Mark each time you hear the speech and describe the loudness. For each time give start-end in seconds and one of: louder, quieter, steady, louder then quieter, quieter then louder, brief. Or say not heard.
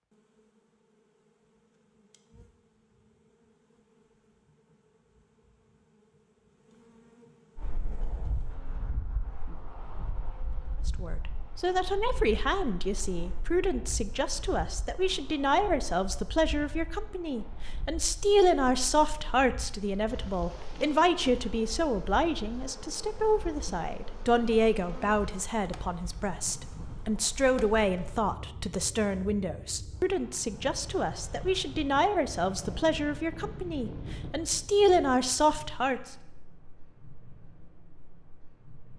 10.8-36.1 steady.